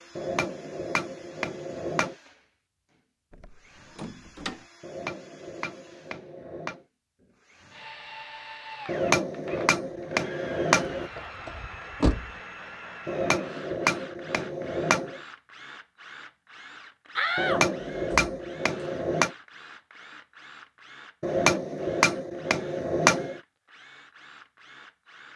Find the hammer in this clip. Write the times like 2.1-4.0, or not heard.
0.1-2.1, 4.8-6.8, 8.8-11.1, 13.1-15.2, 17.4-19.3, 21.2-23.4.